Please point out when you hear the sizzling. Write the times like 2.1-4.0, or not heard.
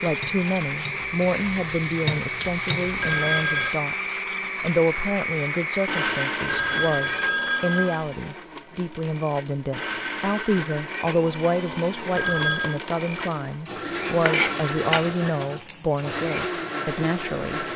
0.0-3.1, 14.1-17.7.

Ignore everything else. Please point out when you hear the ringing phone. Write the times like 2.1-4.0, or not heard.
3.0-3.8, 6.5-8.1, 12.2-12.8.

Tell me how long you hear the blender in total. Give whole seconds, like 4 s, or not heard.
18 s.